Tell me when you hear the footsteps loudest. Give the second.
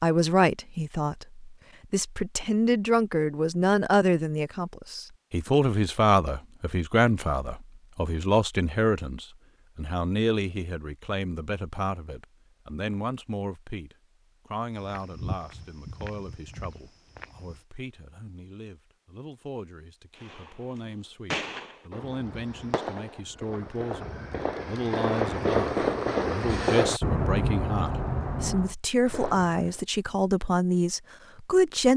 15 s.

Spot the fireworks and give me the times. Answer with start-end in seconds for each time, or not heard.
20.1-29.8.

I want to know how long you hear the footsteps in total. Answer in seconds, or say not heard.
3 s.